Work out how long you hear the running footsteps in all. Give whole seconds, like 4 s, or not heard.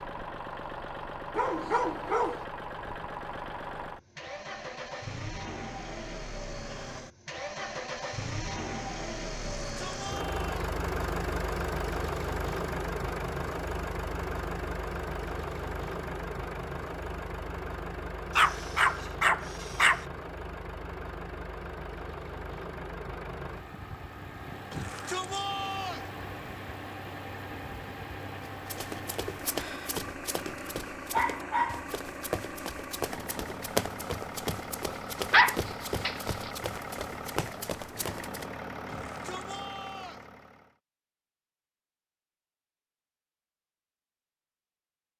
10 s.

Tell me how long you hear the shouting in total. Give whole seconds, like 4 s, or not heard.
4 s.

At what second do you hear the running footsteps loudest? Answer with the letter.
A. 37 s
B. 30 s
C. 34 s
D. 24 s
C.